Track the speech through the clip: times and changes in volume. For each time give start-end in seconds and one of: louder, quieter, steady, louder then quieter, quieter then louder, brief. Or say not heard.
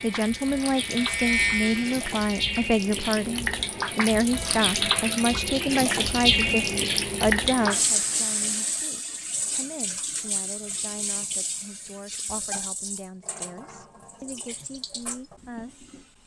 0.0-16.2 quieter.